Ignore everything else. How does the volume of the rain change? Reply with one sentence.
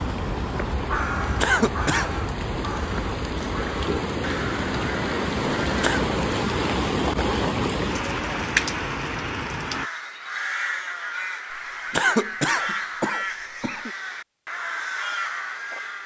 The loudness of the rain goes up.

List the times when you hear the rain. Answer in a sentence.
You can hear the rain from 0.0 to 9.9 s.